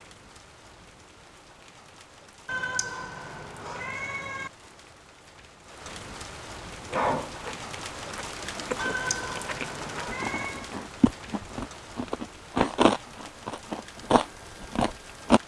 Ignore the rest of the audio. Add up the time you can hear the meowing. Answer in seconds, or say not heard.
4 s.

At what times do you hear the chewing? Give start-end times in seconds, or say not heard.
6.9-15.4.